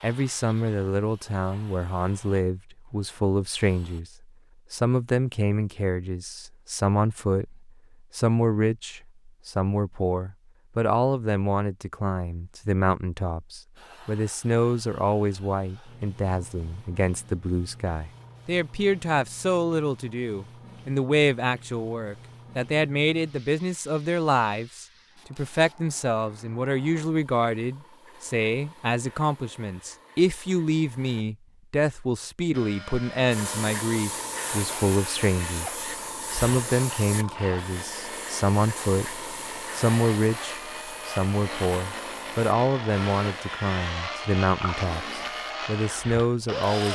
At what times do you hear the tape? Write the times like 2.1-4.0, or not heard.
not heard.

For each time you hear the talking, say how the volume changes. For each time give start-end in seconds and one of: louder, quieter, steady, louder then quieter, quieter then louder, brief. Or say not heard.
0.0-46.9 steady.